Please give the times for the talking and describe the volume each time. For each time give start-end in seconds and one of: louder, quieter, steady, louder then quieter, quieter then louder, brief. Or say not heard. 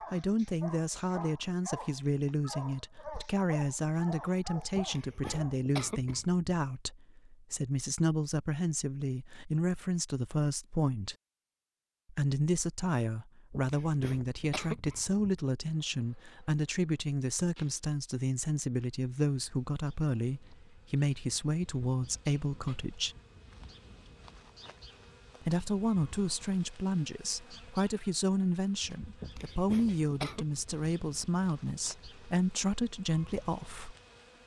0.1-11.2 steady
12.1-23.1 steady
25.4-34.0 steady.